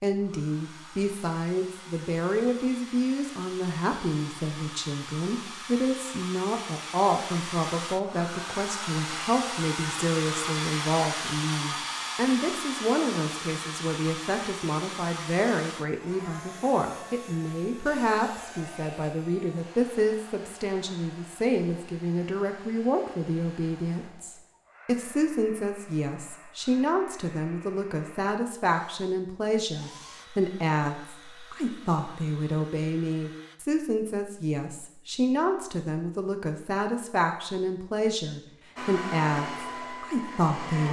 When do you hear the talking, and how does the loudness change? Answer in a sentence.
You can hear the talking from 0.0 to 40.8 s, at a steady volume.